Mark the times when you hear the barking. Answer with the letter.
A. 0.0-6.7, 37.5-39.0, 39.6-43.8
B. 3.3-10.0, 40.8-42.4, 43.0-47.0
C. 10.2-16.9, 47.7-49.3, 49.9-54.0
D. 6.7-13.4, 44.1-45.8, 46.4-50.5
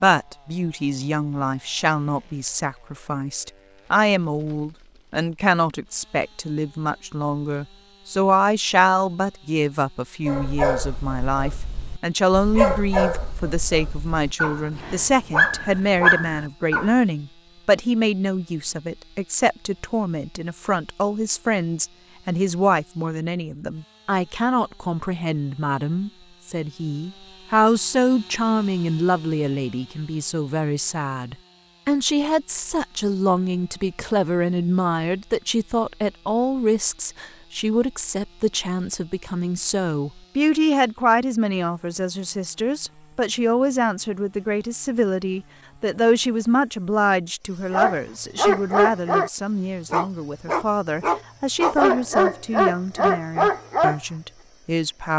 C.